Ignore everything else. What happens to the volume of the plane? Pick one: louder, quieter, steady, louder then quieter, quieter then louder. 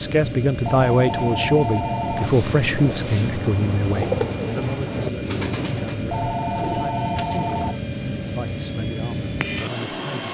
steady.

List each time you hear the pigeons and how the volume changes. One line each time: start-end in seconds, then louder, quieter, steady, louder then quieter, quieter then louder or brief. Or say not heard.
2.1-7.7 louder then quieter.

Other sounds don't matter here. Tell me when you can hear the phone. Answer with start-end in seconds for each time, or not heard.
0.7-2.4, 6.1-7.8.